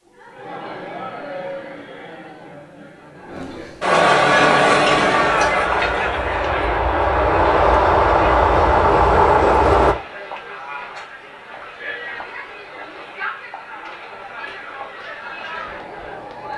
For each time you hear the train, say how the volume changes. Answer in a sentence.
You can hear the train from 4.2 to 9.9 s, getting louder.